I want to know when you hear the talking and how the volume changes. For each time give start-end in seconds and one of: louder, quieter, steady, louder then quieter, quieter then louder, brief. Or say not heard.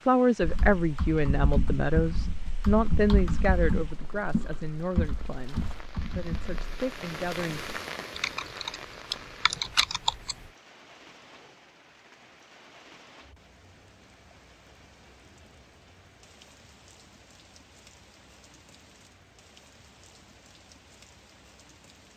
0.1-7.7 quieter.